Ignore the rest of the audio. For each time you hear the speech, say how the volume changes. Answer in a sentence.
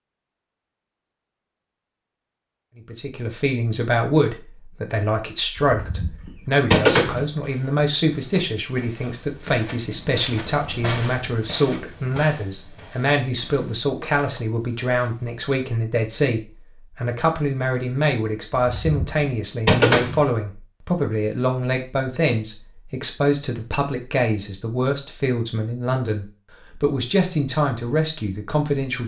You can hear the speech from 2.8 to 29.0 s, at a steady volume.